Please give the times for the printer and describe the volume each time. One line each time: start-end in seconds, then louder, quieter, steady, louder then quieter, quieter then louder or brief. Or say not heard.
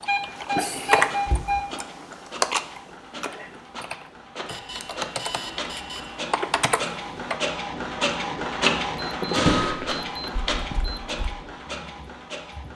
0.0-12.7 louder then quieter.